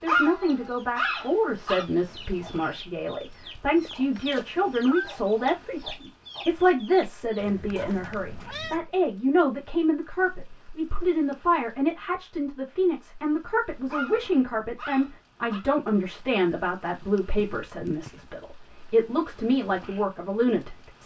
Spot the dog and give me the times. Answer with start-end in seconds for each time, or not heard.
0.1-1.9, 13.8-15.7.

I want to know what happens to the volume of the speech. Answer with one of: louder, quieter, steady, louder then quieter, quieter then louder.
steady.